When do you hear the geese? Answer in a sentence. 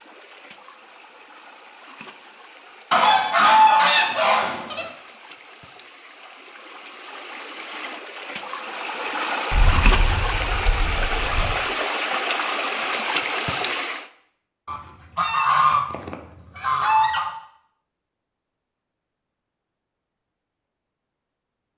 You can hear the geese from 2.9 to 4.9 s, from 9.5 to 11.6 s and from 14.7 to 17.3 s.